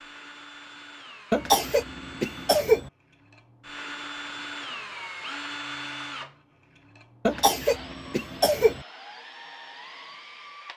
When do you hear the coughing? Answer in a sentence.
The coughing can be heard from 1.3 to 2.9 s and from 7.2 to 8.8 s.